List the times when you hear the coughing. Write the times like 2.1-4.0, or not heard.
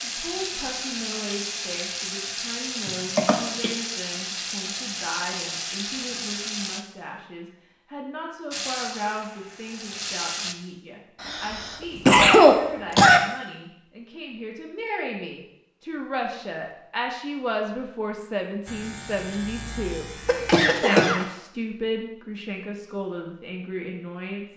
2.9-3.7, 11.2-13.2, 20.2-21.2.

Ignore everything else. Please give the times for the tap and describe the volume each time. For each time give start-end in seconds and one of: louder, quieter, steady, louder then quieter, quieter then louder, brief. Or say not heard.
0.0-6.8 steady
8.5-10.6 brief.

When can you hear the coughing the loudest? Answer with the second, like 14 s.
12 s.